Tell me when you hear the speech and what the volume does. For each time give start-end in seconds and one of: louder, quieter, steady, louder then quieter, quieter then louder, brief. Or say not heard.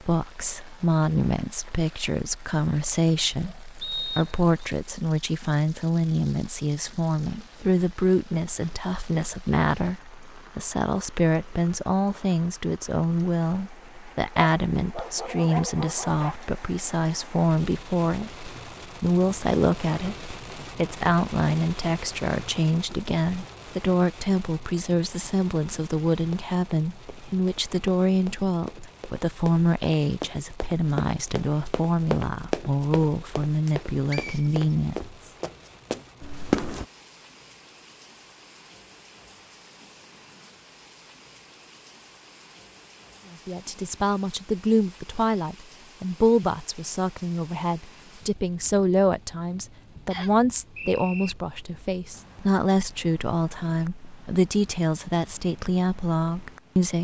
0.0-35.1 steady
43.3-57.0 steady.